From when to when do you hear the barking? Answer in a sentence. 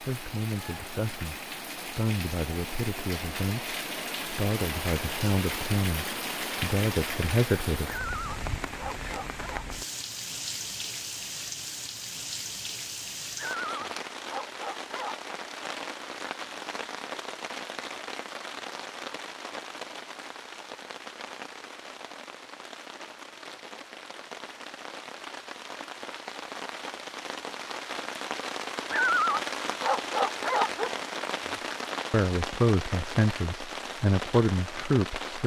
The barking can be heard from 7.8 to 9.7 s, from 13.3 to 15.2 s and from 28.9 to 30.9 s.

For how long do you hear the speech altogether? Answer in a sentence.
You can hear the speech for 12 seconds altogether.